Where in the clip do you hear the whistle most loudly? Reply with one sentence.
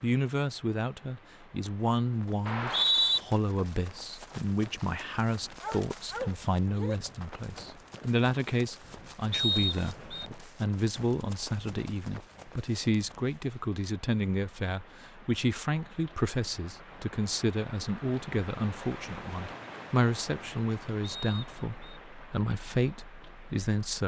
The loudest moment of the whistle is at 3 seconds.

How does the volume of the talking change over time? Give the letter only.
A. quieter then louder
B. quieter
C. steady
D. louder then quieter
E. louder
C.